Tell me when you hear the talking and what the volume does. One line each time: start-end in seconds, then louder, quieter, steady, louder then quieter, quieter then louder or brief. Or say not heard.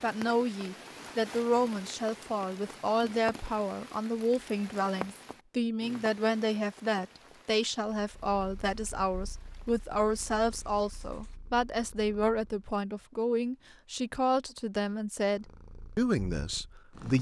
0.0-17.1 steady.